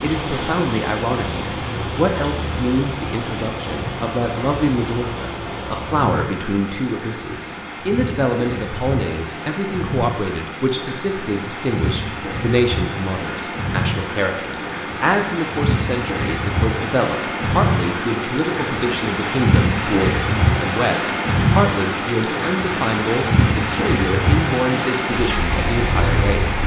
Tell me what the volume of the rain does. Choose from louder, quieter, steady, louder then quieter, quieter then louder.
louder.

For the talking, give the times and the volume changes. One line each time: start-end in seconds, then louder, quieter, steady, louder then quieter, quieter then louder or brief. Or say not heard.
0.0-26.6 steady.